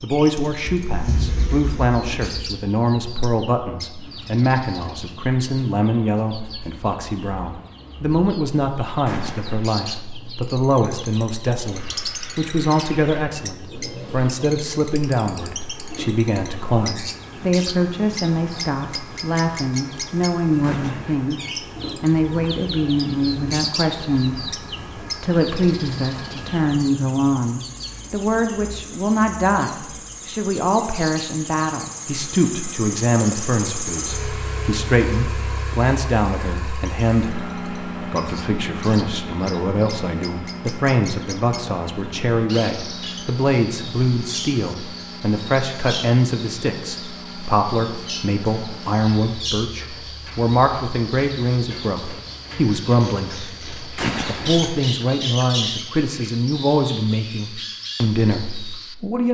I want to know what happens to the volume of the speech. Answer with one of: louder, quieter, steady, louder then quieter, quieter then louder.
steady.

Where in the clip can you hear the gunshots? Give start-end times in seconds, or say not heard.
9.1-9.8, 20.6-21.5, 54.0-54.8.